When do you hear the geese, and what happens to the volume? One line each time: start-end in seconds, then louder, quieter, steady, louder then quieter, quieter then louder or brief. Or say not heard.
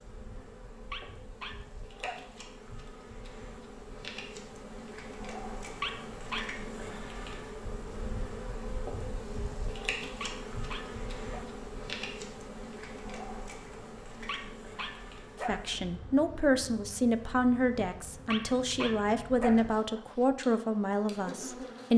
not heard.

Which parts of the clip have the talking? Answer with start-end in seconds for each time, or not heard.
15.4-21.9.